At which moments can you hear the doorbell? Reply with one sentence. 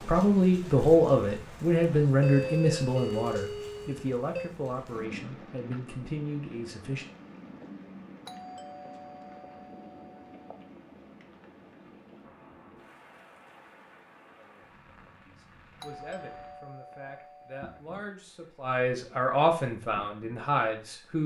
You can hear the doorbell from 2.2 to 4.5 s, from 8.2 to 10.5 s and from 15.8 to 17.6 s.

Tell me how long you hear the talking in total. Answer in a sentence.
You can hear the talking for 13 seconds altogether.